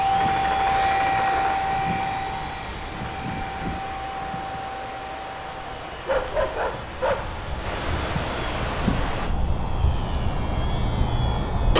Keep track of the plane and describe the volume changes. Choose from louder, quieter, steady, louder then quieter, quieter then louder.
quieter then louder.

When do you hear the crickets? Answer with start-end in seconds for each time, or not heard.
0.0-9.3.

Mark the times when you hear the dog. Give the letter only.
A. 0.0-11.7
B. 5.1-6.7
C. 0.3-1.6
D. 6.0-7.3
D.